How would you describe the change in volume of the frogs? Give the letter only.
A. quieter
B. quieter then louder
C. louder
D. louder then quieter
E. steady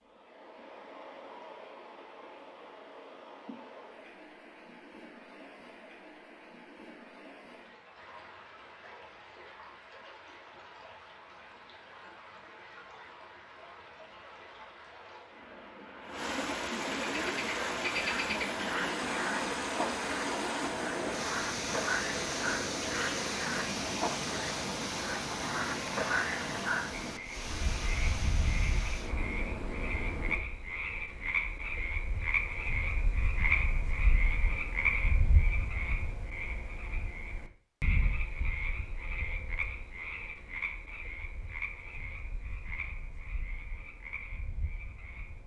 A.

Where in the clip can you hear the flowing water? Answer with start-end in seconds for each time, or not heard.
0.0-30.4.